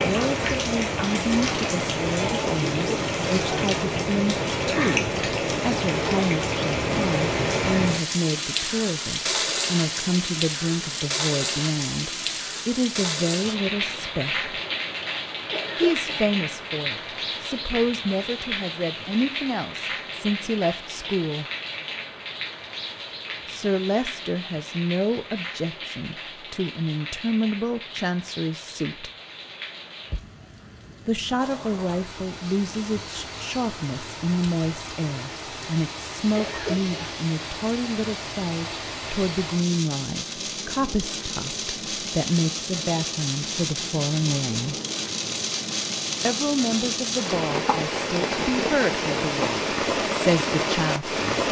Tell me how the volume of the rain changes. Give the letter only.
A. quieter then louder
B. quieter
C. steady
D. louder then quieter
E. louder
A.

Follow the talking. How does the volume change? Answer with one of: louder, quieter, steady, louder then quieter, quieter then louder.
steady.